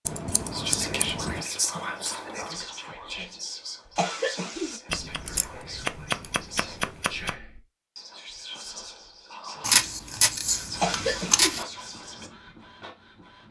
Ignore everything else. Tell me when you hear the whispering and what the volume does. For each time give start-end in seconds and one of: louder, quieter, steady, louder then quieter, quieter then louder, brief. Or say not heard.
0.5-12.3 quieter.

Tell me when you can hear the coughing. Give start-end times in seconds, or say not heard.
4.0-4.8, 10.8-11.6.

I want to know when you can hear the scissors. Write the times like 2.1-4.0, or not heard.
0.1-1.4, 4.9-7.3, 9.6-11.7.